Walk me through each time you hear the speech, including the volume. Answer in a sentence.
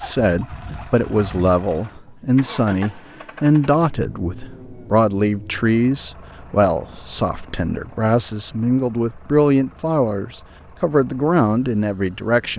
The speech can be heard from 0.0 to 12.5 s, at a steady volume.